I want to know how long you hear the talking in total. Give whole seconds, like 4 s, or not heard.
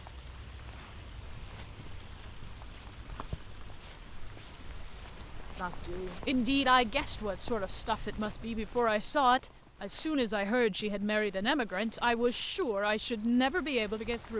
9 s.